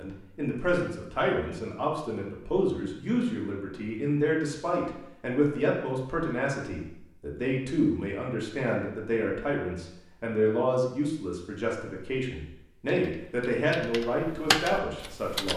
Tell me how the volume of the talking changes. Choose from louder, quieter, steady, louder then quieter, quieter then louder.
steady.